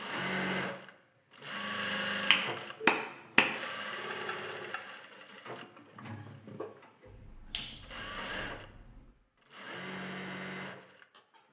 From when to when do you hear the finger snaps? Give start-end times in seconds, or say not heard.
2.3-3.5, 7.0-9.1.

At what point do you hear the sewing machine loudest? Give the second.
2 s.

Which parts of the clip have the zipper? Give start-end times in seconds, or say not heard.
not heard.